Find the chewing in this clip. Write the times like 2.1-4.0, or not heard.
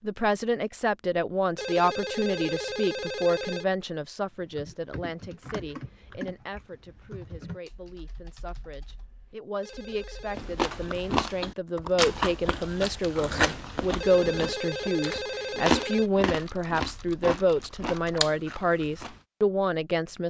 10.3-19.2.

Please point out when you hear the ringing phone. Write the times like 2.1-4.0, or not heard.
1.6-3.8, 9.6-10.4, 14.0-16.2.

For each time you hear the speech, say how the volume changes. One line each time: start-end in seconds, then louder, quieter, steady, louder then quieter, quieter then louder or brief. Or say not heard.
0.0-20.2 quieter then louder.